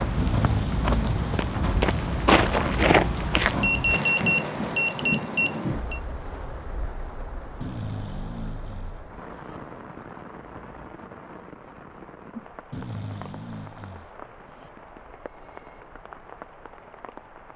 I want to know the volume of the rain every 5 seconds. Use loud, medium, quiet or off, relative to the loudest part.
loud, medium, quiet, quiet.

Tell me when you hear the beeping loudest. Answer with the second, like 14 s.
4 s.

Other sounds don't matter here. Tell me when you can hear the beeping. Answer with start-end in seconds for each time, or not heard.
3.6-6.0, 14.7-15.8.